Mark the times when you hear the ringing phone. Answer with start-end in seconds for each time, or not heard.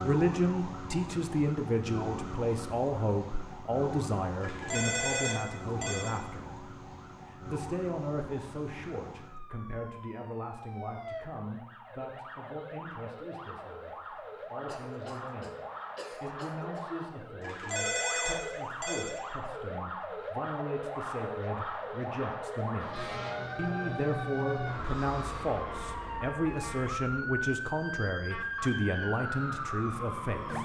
4.4-6.2, 17.4-19.2.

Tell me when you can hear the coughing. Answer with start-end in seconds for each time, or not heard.
14.7-16.9.